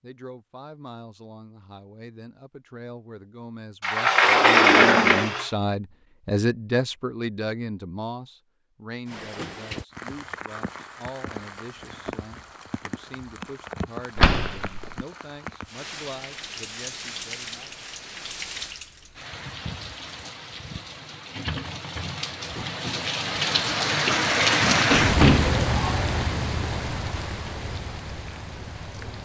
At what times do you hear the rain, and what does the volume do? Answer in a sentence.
The rain can be heard from 9.1 to 29.2 s, getting louder.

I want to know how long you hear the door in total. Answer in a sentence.
You can hear the door for 4 seconds altogether.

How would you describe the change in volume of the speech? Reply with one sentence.
The loudness of the speech goes up, then down.